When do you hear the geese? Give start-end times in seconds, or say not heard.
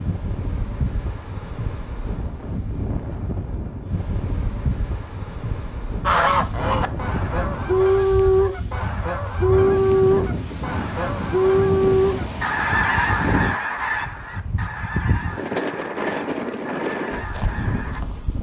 6.0-18.0.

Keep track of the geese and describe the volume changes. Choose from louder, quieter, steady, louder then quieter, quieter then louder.
quieter.